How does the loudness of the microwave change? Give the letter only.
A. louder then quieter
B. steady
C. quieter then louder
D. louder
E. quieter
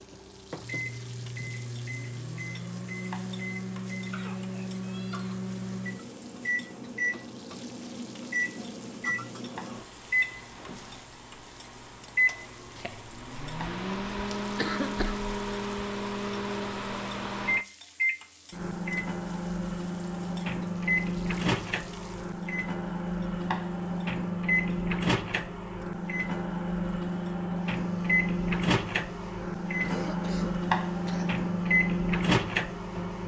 D.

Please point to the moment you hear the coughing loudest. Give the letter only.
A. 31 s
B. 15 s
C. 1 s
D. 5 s
B.